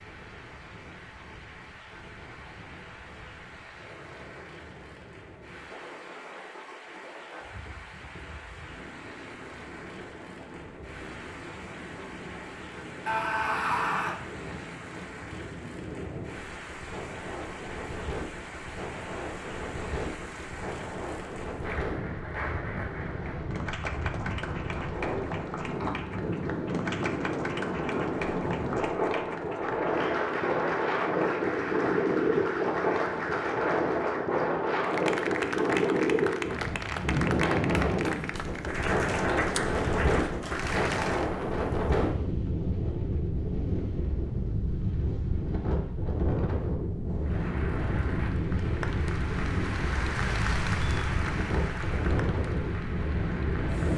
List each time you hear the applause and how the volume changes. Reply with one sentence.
The applause can be heard from 0.0 to 41.3 s, getting louder; and from 47.2 to 53.9 s, getting louder then quieter.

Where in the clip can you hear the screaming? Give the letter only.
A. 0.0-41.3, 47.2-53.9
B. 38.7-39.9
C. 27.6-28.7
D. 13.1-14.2
D.